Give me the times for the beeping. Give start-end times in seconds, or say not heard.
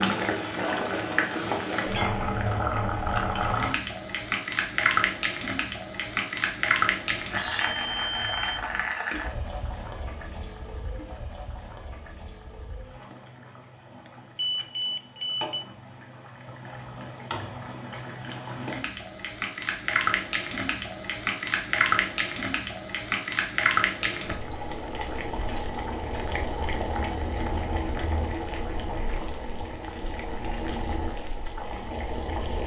7.3-8.9, 14.1-15.7, 24.0-25.9.